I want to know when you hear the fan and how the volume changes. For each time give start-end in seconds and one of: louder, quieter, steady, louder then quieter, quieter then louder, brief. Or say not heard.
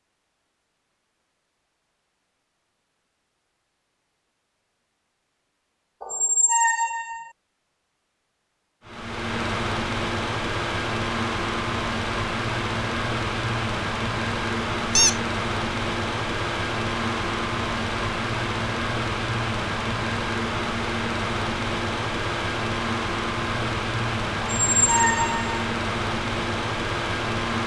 8.8-27.6 steady.